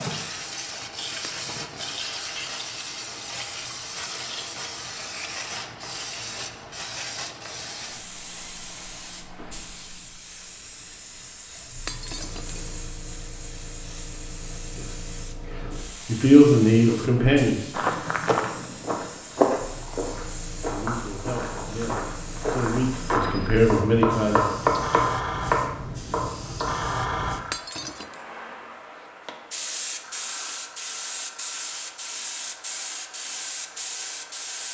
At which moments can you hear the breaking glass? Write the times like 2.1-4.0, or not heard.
1.2-2.1, 11.8-12.8, 27.5-28.2.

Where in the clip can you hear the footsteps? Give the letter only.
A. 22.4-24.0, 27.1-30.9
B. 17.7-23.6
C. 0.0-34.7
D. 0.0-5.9
B.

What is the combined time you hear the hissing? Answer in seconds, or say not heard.
35 s.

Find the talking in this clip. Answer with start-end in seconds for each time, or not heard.
16.1-17.6, 20.7-24.6.